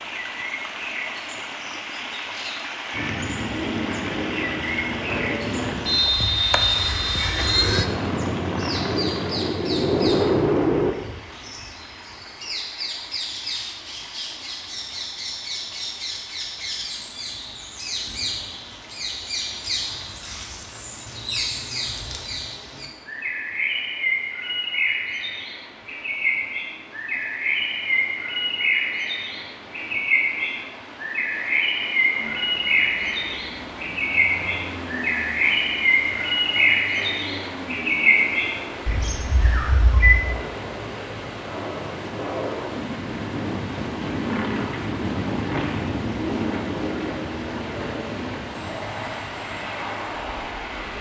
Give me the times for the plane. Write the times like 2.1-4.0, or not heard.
2.9-10.9, 32.1-50.9.